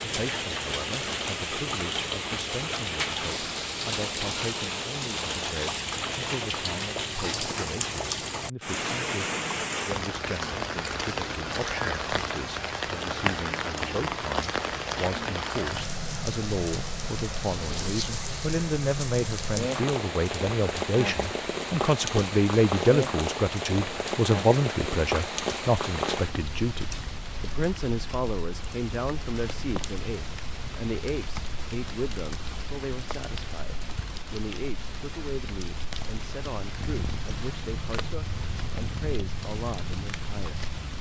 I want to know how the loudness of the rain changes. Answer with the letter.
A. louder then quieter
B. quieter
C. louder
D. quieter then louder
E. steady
B.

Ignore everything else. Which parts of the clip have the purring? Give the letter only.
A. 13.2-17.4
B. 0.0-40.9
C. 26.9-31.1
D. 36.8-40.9
D.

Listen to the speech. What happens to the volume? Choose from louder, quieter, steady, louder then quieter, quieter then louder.
louder then quieter.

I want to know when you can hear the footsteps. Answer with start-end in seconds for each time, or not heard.
not heard.